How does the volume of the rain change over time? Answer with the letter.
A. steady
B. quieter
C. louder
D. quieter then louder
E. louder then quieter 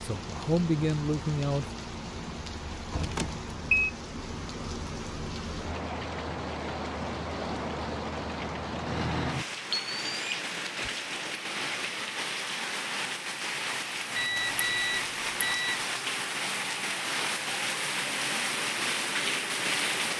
C.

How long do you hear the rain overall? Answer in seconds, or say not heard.
20 s.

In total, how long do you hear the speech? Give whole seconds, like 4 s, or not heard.
2 s.